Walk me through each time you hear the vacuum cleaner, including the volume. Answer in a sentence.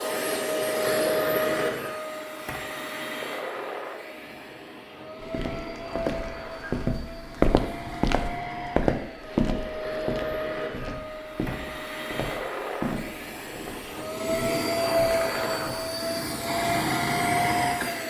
You can hear the vacuum cleaner from 0.0 to 18.0 s, getting quieter then louder.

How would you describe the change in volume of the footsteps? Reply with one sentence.
The loudness of the footsteps goes down.